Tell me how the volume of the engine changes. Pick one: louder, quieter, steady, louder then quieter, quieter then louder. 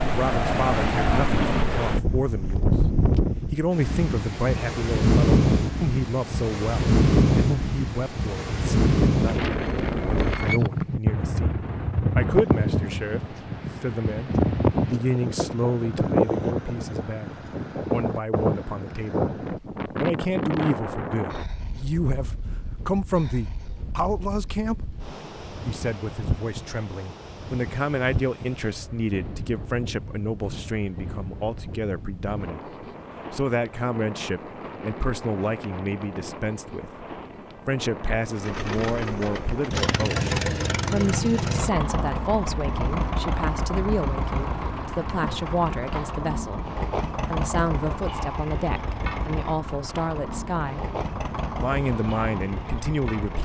quieter.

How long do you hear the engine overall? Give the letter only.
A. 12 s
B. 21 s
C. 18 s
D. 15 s
D.